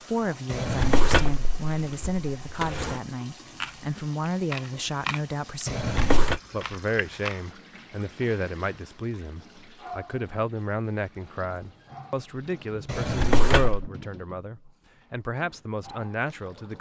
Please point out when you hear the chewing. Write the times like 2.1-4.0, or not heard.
3.5-7.4.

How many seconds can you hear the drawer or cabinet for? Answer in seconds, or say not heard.
4 s.